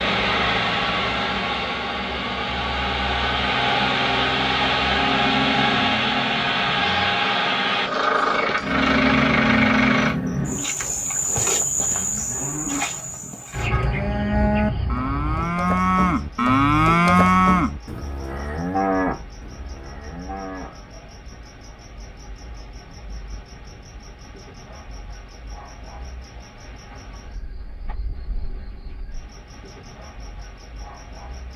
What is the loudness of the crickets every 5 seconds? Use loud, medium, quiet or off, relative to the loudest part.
medium, loud, loud, quiet, quiet, quiet, quiet.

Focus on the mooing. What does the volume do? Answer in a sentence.
The loudness of the mooing goes up, then down.